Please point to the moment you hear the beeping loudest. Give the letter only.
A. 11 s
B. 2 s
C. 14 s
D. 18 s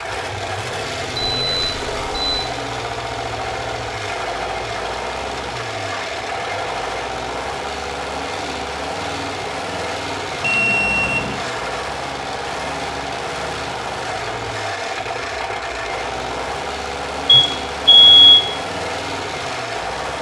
D.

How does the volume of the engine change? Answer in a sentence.
The loudness of the engine stays about the same.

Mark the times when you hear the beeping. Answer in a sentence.
You can hear the beeping from 1.1 to 2.5 s, from 10.4 to 11.4 s and from 17.2 to 18.3 s.